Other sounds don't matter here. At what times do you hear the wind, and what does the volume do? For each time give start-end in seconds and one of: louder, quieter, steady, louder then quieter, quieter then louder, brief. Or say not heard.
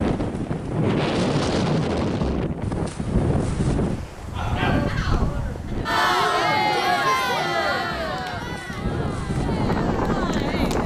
0.0-10.8 quieter then louder.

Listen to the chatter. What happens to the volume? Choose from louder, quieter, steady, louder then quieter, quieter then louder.
louder then quieter.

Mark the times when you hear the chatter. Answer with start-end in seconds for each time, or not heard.
4.3-10.8.